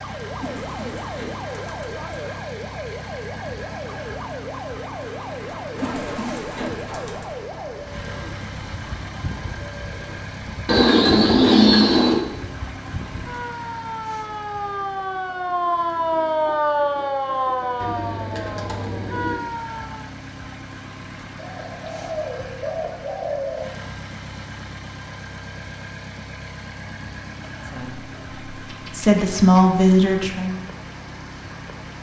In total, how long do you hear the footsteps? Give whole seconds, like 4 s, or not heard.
not heard.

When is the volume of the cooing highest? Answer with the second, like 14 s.
12 s.